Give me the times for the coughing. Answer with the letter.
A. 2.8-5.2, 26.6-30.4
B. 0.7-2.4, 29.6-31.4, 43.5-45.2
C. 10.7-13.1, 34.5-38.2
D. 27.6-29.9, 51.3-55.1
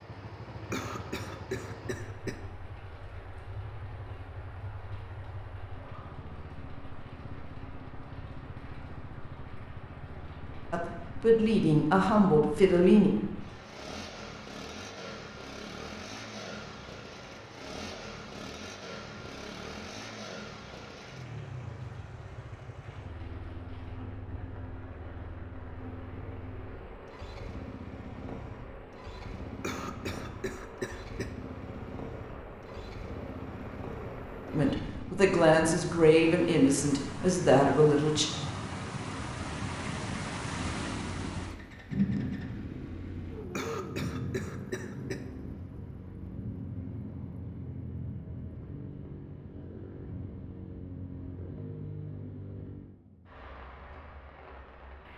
B.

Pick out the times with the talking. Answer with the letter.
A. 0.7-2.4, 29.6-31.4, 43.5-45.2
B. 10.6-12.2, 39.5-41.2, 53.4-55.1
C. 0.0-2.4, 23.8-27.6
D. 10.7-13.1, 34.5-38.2
D.